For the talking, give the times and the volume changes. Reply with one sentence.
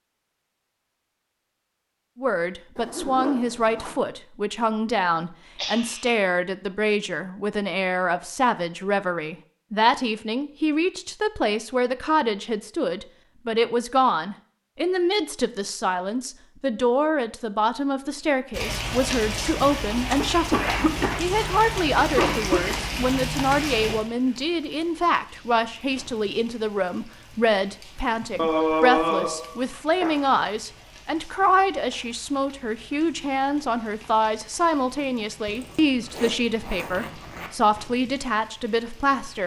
You can hear the talking from 2.1 to 39.4 s, at a steady volume.